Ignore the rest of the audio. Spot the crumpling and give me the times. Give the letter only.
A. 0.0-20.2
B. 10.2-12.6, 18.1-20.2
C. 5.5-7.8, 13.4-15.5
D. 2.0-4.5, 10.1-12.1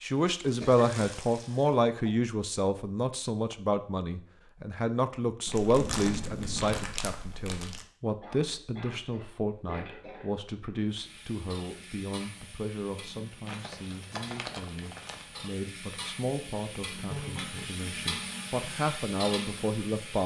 C.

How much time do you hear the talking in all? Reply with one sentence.
You can hear the talking for 20 seconds altogether.